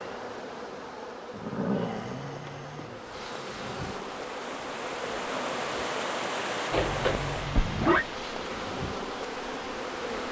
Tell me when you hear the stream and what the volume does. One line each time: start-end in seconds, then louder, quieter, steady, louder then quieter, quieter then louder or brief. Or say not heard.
2.8-10.2 louder then quieter.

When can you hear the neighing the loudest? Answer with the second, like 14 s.
8 s.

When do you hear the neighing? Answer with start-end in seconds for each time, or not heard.
1.3-3.0, 6.7-8.1.